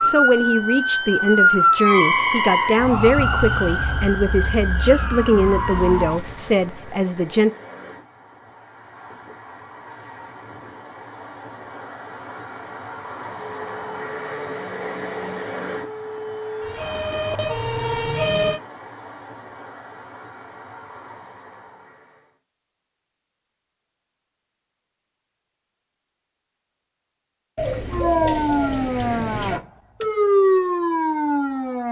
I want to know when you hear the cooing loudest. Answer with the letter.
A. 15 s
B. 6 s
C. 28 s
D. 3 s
C.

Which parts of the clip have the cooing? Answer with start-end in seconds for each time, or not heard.
27.6-29.6.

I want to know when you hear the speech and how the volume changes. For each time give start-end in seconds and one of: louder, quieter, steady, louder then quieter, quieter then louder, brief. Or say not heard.
0.0-7.5 steady.